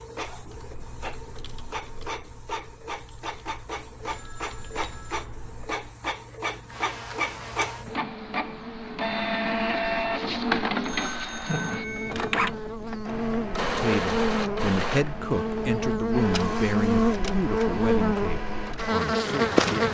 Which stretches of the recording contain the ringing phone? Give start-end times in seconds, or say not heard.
4.0-5.2, 10.8-12.4.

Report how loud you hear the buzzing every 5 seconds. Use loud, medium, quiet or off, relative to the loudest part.
off, quiet, medium, loud.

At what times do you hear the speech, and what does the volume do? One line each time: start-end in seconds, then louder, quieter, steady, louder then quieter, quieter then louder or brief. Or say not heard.
13.7-19.8 quieter.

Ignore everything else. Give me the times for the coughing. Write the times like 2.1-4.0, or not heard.
not heard.